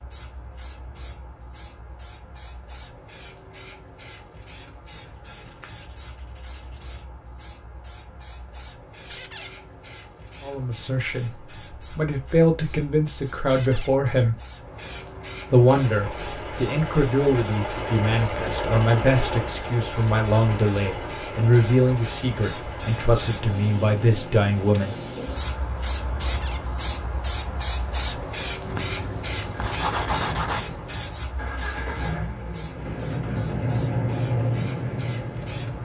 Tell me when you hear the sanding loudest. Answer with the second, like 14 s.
30 s.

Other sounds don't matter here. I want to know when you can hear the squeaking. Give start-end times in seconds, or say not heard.
9.1-9.6, 13.4-13.9, 26.2-26.6.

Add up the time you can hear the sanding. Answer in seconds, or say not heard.
4 s.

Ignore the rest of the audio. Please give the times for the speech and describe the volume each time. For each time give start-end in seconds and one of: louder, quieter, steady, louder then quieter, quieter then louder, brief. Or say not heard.
10.4-11.3 brief
11.9-14.3 brief
15.5-25.4 steady.